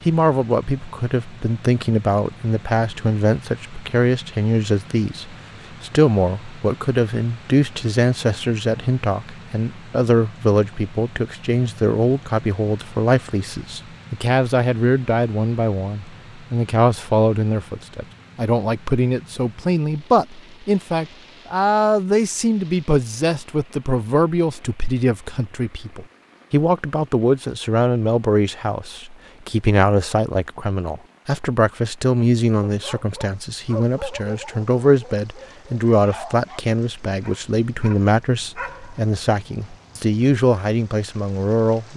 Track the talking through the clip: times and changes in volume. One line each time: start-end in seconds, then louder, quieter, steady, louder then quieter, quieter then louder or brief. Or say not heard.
0.1-41.9 steady.